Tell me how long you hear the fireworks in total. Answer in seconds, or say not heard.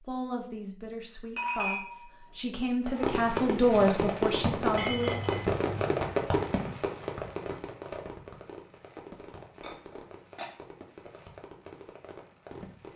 10 s.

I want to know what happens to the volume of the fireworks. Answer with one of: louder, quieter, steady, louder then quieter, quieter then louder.
quieter.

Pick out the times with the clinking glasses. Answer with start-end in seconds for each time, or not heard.
1.4-2.7, 4.8-5.7, 9.6-10.5.